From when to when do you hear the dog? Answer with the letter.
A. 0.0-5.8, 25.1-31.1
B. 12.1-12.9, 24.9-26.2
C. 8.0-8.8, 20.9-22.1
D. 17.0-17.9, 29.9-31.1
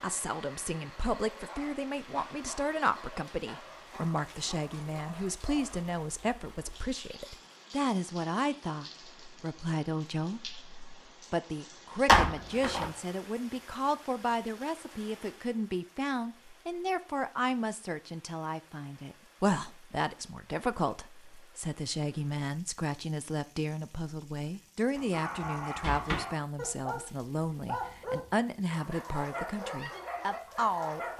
A.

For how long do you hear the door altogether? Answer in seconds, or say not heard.
2 s.